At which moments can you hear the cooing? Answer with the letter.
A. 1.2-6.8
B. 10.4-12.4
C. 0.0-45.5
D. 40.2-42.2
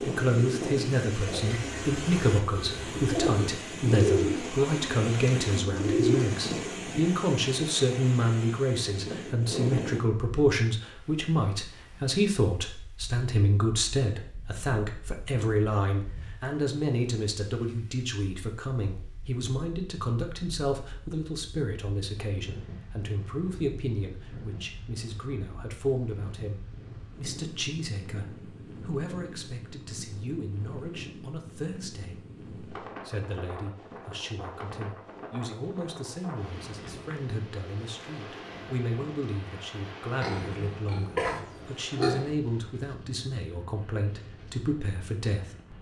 A.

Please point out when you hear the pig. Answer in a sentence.
You can hear the pig from 40.2 to 42.2 s.